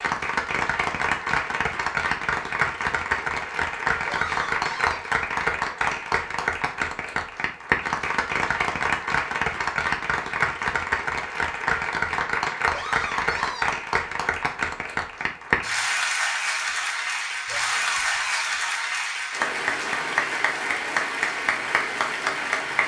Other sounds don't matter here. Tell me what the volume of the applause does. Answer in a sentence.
The volume of the applause stays about the same.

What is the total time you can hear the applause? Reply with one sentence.
The applause can be heard for 23 seconds in total.